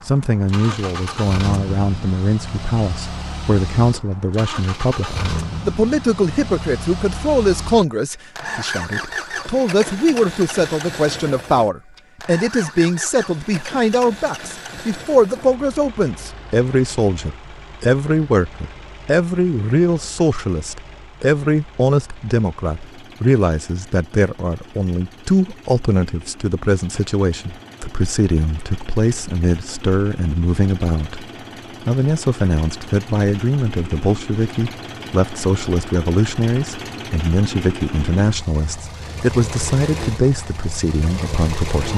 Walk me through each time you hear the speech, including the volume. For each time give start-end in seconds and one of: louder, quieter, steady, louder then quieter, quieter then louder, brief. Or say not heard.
0.1-41.9 steady.